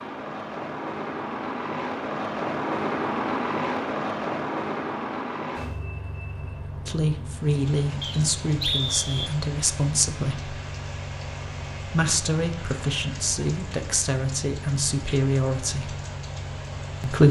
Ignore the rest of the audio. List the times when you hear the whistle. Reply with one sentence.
You can hear the whistle from 8.0 to 9.3 s.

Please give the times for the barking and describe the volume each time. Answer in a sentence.
The barking can't be heard in this clip.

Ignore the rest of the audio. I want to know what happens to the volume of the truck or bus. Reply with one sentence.
The loudness of the truck or bus goes down.